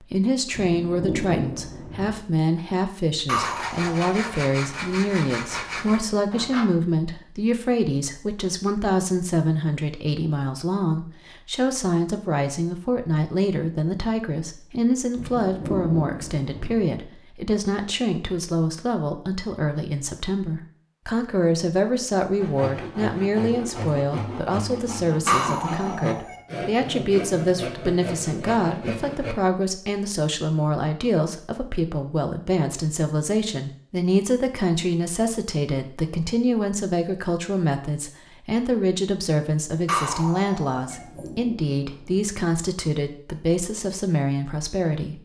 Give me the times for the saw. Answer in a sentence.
You can hear the saw from 3.3 to 6.7 s and from 22.4 to 29.4 s.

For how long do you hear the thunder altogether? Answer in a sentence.
The thunder can be heard for 5 seconds in total.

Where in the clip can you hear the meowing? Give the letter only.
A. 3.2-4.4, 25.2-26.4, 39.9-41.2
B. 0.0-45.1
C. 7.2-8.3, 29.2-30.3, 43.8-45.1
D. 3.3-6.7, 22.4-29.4
A.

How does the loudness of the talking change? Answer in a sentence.
The loudness of the talking stays about the same.